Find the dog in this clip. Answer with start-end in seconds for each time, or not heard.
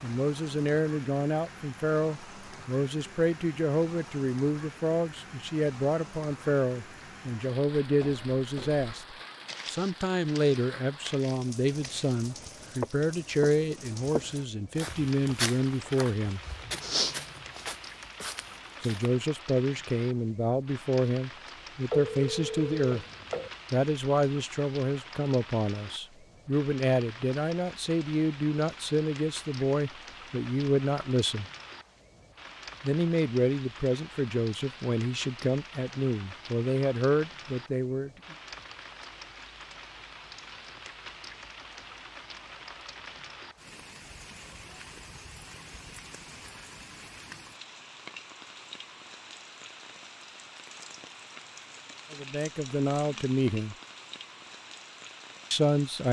not heard.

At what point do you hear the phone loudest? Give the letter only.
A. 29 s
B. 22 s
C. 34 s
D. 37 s
B.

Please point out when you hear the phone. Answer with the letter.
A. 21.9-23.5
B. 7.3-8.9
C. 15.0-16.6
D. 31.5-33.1
A.